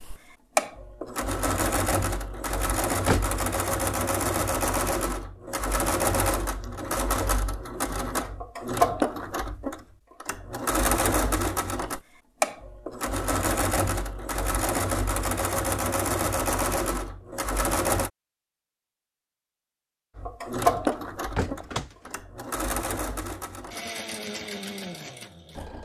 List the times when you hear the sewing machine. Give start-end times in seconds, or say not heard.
0.0-18.1, 20.1-25.7.